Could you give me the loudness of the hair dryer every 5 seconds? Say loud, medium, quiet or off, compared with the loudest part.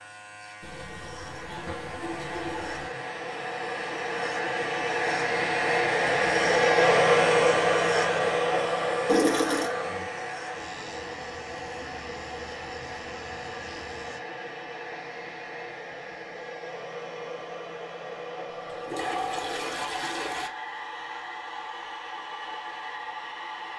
medium, loud, quiet, quiet, quiet.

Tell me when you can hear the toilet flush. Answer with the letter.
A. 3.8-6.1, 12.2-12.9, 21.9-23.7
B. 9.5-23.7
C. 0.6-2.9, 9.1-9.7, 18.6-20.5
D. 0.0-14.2
C.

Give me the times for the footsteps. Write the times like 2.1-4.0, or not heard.
not heard.